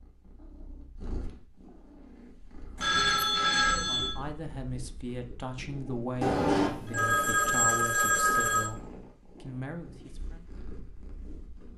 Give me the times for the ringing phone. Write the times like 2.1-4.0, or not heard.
2.8-4.2, 6.2-8.7.